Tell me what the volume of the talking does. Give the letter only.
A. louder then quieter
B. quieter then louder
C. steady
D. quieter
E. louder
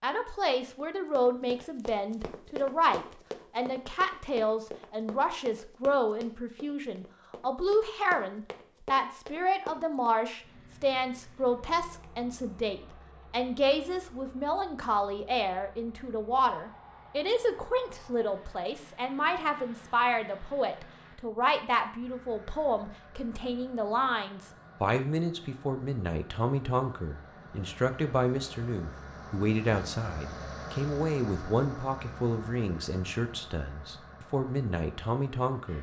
C.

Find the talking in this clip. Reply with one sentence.
You can hear the talking from 0.0 to 35.7 s.